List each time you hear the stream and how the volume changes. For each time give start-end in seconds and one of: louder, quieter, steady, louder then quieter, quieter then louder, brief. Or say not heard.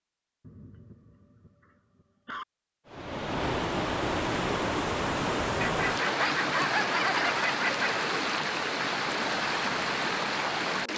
2.9-10.9 steady.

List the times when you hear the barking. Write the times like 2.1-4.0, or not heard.
0.4-2.5, 5.6-7.8.